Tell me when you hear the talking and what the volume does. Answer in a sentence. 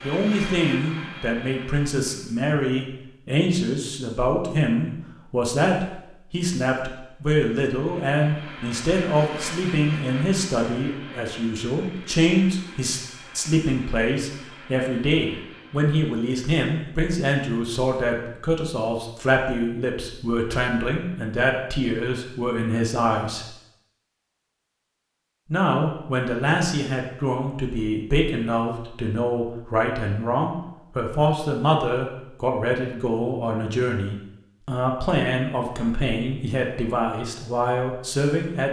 You can hear the talking from 0.0 to 23.5 s, at a steady volume; and from 25.5 to 38.6 s, at a steady volume.